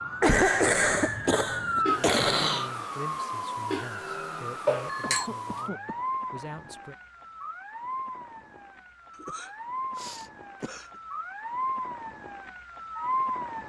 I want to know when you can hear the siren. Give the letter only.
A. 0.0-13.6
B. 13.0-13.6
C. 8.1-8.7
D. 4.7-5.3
A.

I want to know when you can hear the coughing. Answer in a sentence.
You can hear the coughing from 0.2 to 2.7 s, from 5.0 to 6.0 s and from 9.2 to 10.9 s.